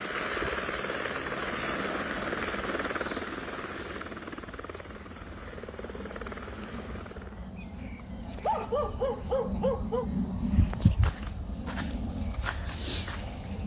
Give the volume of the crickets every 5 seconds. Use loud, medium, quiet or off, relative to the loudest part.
quiet, medium, loud.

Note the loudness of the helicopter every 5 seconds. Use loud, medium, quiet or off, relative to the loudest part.
loud, medium, off.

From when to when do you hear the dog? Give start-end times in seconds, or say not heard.
8.3-10.1.